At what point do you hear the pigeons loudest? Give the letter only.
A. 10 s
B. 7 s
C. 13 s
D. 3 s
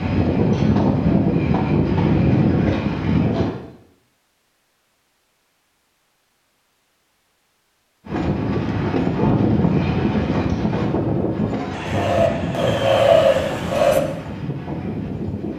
C.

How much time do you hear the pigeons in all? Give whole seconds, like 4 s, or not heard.
2 s.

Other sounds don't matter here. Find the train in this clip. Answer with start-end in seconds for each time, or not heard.
0.0-3.5, 8.1-15.5.